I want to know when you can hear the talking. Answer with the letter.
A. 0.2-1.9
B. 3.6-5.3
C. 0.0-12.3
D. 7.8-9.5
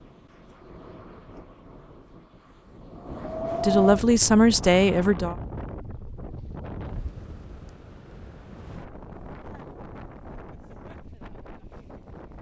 B.